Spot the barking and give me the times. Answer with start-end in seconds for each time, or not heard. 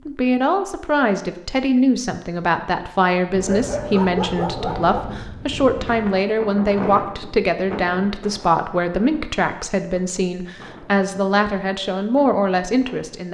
3.5-5.0.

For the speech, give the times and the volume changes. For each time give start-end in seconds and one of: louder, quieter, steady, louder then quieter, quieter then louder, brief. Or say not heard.
0.1-13.2 steady.